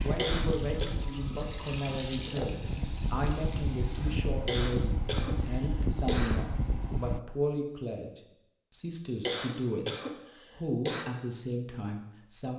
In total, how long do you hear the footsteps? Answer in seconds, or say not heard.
not heard.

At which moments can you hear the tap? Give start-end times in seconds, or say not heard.
0.0-4.2.